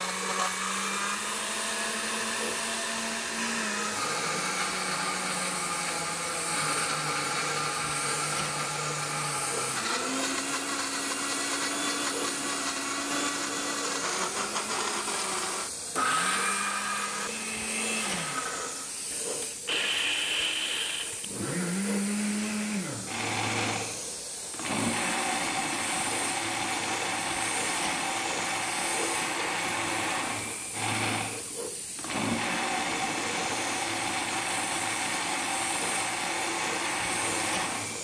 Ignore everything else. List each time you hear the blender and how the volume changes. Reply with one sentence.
The blender can be heard from 0.0 to 37.9 s, at a steady volume.